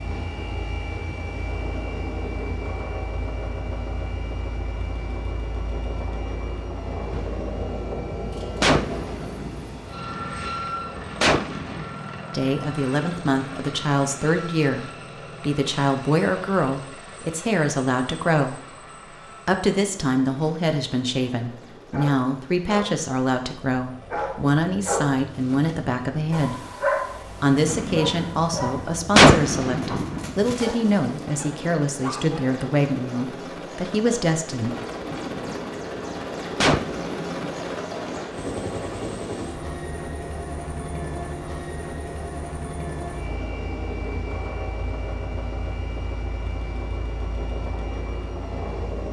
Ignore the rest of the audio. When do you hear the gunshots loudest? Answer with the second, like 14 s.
29 s.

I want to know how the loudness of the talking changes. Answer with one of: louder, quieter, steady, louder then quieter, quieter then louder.
steady.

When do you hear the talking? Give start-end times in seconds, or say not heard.
12.3-18.6, 19.4-26.6, 27.4-34.8.